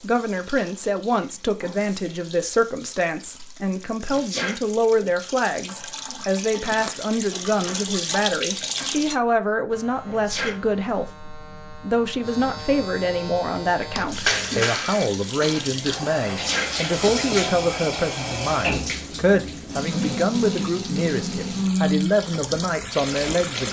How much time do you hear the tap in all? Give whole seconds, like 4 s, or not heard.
19 s.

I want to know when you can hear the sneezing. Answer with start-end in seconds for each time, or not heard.
4.0-5.3, 10.1-10.6, 16.2-17.5.